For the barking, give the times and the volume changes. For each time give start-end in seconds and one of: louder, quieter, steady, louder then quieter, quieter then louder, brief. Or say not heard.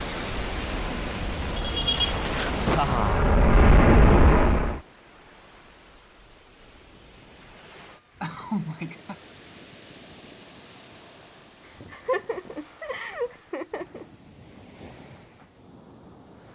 not heard.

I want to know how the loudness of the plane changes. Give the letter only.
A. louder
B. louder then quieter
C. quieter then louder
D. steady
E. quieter
A.